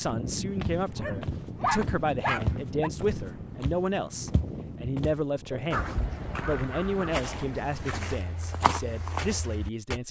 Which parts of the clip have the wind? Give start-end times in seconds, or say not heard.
0.0-8.1.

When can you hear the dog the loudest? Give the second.
2 s.